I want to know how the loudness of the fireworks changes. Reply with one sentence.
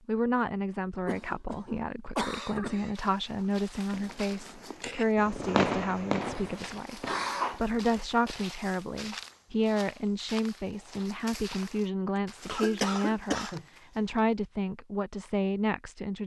The volume of the fireworks goes up, then down.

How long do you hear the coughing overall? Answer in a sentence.
You can hear the coughing for 5 seconds altogether.